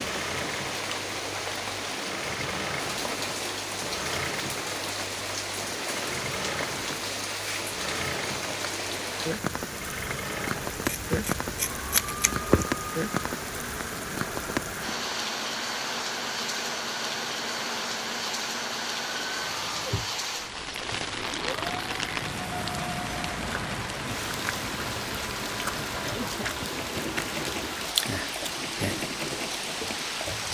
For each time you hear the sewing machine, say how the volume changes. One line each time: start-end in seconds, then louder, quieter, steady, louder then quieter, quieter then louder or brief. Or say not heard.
0.0-30.4 steady.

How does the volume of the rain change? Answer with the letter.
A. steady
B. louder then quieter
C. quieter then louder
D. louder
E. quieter
A.